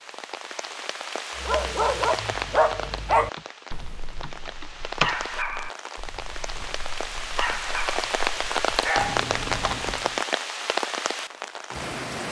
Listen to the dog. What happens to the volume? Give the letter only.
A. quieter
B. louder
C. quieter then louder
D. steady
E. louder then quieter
C.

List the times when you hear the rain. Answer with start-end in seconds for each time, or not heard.
0.0-12.2.